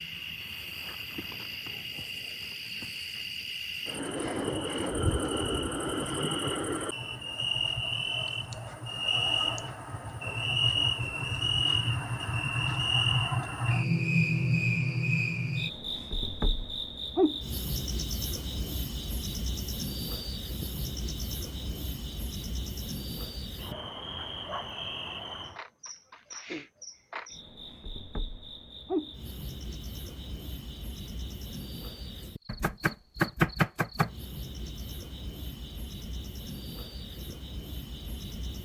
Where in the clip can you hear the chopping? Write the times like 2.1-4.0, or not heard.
32.5-34.1.